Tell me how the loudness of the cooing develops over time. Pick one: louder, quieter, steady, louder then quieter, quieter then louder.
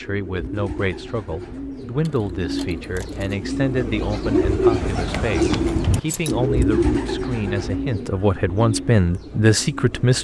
louder then quieter.